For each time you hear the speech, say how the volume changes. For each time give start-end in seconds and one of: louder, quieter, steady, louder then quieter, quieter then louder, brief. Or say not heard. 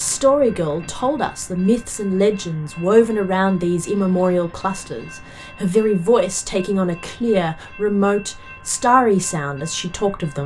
0.0-10.4 steady.